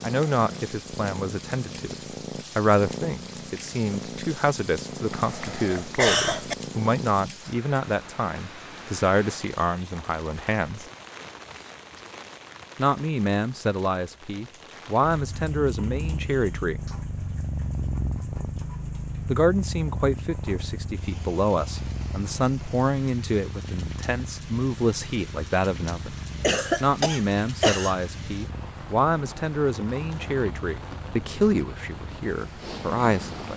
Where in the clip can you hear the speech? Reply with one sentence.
You can hear the speech from 0.0 to 1.9 s, from 2.5 to 10.8 s, from 12.8 to 16.8 s, from 19.2 to 26.1 s and from 26.8 to 33.5 s.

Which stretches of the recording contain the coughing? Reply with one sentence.
The coughing can be heard from 5.1 to 6.5 s and from 26.4 to 28.1 s.